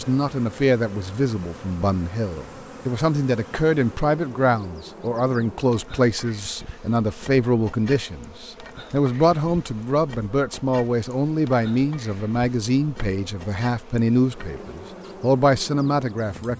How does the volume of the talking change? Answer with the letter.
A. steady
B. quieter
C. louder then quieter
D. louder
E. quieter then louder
A.